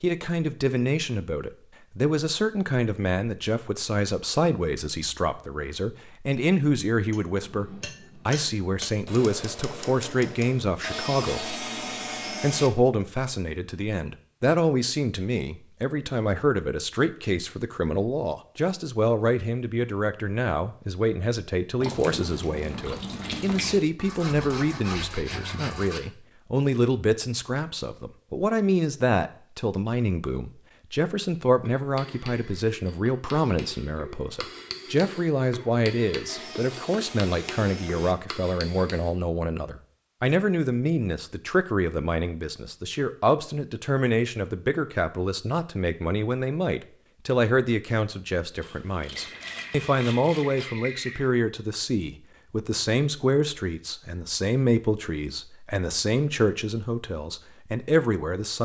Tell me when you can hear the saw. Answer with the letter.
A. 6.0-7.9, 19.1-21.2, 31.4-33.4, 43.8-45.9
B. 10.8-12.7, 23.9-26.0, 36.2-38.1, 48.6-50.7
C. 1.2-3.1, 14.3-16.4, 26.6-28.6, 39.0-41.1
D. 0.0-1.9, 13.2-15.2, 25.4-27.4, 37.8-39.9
B.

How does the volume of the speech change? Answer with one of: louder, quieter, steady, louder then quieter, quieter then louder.
steady.